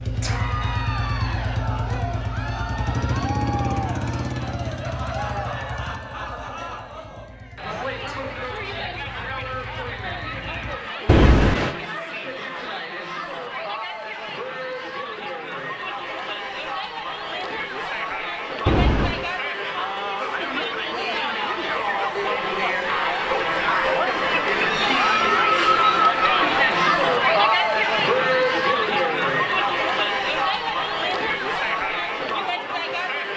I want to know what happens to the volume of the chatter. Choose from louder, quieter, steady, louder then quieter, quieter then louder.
louder.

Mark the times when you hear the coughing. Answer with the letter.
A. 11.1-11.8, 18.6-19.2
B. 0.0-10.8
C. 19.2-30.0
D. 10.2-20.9
A.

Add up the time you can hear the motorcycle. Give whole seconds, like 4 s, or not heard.
11 s.